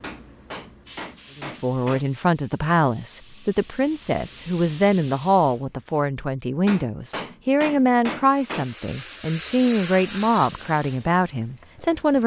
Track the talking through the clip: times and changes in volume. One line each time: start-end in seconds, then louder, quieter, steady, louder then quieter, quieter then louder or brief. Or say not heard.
1.4-12.2 steady.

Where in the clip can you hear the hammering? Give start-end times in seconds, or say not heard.
0.0-2.0, 6.7-8.7.